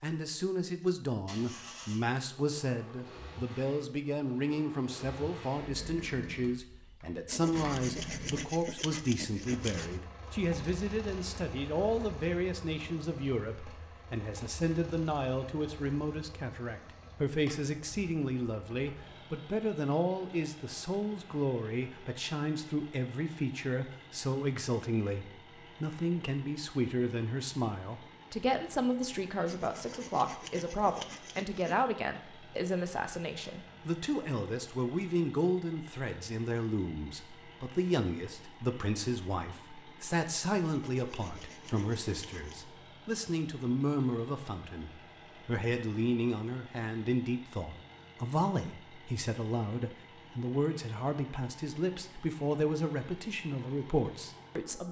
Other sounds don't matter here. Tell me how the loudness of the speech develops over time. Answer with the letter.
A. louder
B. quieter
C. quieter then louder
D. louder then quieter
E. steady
E.